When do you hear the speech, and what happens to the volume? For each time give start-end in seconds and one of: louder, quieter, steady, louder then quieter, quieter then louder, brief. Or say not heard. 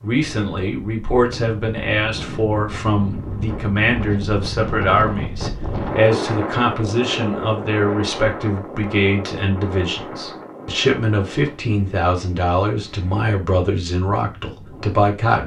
0.0-15.4 steady.